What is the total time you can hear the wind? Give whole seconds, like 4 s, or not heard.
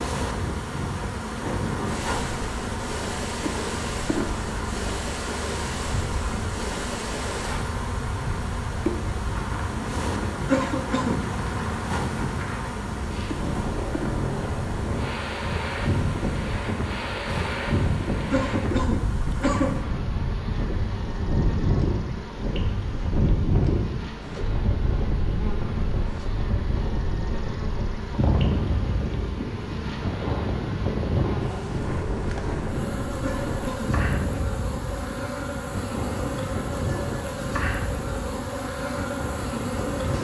40 s.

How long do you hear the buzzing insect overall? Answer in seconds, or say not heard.
40 s.